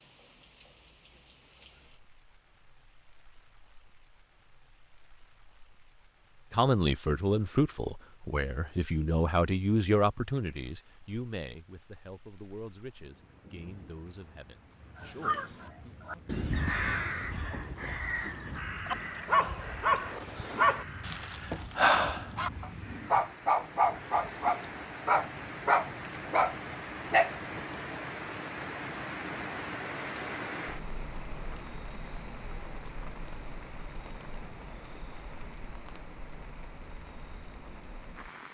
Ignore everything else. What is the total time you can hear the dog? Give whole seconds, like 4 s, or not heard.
9 s.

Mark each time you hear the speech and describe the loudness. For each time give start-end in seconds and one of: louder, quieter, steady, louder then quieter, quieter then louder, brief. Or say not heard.
6.5-15.9 quieter.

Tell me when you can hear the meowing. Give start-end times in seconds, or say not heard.
not heard.